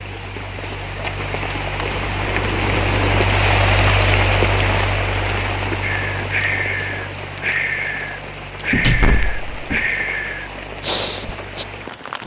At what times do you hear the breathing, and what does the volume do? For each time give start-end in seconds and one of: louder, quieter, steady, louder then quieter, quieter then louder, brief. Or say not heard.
5.8-11.7 steady.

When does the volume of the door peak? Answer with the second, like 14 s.
9 s.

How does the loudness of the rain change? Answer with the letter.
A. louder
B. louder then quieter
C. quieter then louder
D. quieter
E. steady
B.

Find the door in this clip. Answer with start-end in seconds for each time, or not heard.
1.9-3.3, 8.7-9.9.